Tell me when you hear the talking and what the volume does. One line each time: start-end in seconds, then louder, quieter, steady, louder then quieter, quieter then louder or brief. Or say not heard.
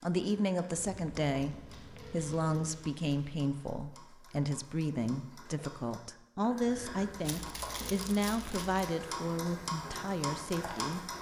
0.0-11.1 steady.